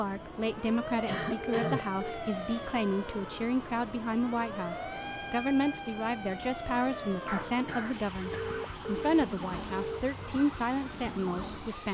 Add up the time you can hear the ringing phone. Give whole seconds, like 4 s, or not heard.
3 s.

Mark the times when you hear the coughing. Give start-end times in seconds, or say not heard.
1.1-1.9, 7.2-8.6.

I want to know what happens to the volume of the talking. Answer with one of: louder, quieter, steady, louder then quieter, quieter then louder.
steady.